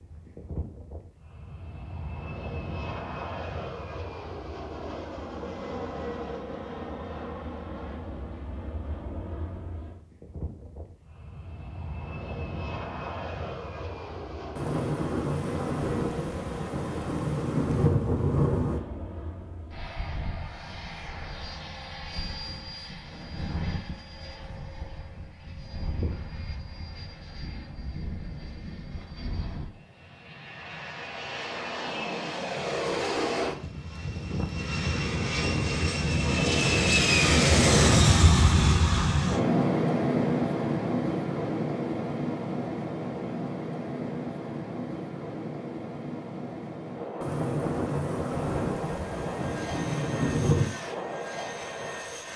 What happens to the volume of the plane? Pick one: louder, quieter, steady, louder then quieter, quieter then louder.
louder then quieter.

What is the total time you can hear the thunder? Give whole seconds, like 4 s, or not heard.
8 s.